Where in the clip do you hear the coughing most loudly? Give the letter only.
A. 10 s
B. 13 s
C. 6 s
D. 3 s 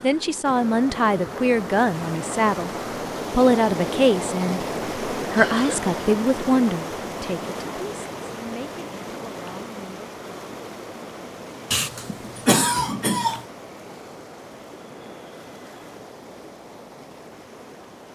B.